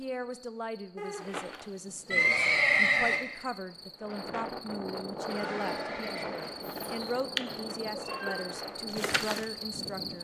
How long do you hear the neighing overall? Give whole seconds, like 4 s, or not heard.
3 s.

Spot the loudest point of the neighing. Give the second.
3 s.